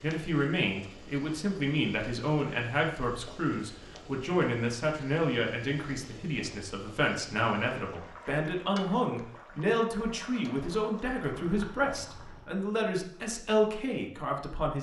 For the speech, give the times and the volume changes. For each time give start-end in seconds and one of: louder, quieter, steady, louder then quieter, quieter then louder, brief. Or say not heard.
0.0-14.7 steady.